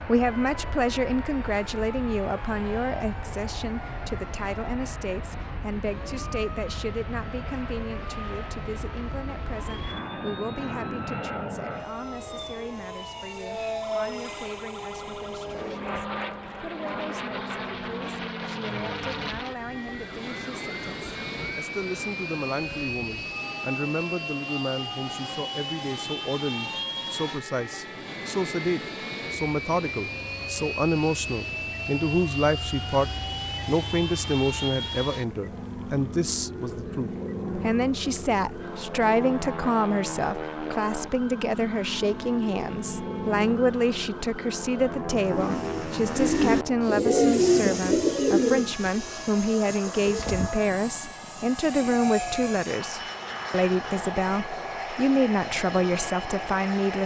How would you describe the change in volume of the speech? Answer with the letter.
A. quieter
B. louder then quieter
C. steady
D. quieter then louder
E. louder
D.